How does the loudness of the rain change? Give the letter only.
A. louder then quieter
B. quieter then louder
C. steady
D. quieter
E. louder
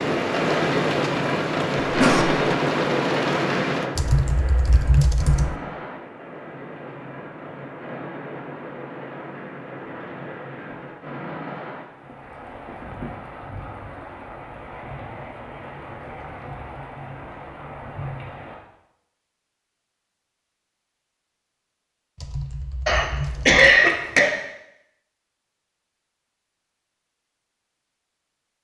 D.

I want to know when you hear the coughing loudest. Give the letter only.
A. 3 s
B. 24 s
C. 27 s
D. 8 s
B.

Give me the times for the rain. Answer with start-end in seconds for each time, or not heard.
0.0-18.6.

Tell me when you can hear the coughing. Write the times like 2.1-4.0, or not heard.
1.8-2.2, 22.9-24.4.